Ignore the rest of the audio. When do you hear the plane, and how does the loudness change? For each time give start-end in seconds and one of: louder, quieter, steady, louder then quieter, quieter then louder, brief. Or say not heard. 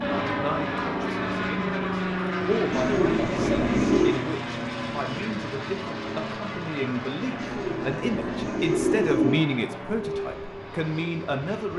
0.0-11.7 quieter.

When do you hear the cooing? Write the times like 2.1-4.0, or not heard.
2.7-4.2, 7.3-9.4.